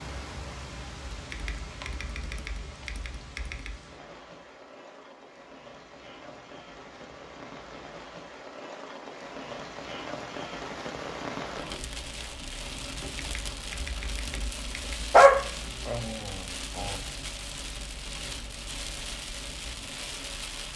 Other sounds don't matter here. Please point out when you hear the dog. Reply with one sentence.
The dog can be heard from 15.1 to 16.9 s.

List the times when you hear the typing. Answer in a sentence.
The typing can be heard from 1.1 to 3.8 s and from 13.1 to 15.2 s.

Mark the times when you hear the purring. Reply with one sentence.
The purring can't be heard in this clip.